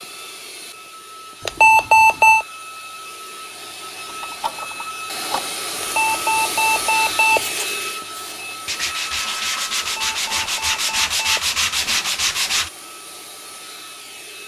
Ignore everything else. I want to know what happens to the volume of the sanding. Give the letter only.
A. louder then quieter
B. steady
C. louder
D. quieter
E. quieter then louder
C.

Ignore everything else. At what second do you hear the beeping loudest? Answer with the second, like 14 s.
2 s.